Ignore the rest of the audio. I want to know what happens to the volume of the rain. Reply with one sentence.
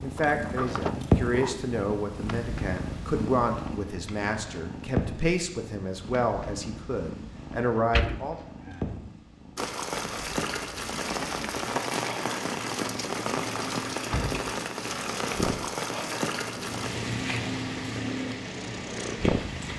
The volume of the rain goes down.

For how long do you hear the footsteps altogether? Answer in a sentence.
You can't hear the footsteps here.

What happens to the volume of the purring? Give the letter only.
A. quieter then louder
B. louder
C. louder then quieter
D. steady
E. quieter
A.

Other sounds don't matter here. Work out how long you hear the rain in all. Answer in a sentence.
You can hear the rain for 10 seconds altogether.